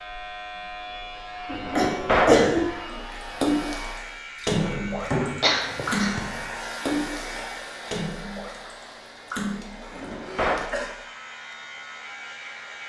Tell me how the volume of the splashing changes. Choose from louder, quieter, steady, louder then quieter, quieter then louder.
quieter.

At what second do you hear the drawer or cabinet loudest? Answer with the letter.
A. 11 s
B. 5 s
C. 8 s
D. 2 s
D.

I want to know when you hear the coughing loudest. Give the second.
2 s.